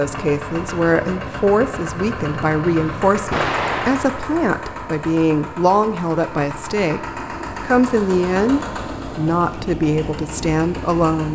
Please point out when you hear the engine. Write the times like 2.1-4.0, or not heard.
0.0-11.2.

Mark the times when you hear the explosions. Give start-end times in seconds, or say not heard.
3.3-4.2.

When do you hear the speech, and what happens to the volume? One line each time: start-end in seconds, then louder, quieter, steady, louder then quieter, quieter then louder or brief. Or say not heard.
0.0-11.2 steady.